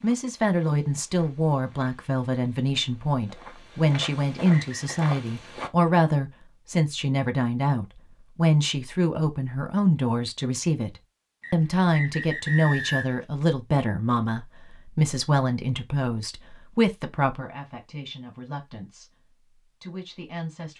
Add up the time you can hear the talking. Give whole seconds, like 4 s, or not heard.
21 s.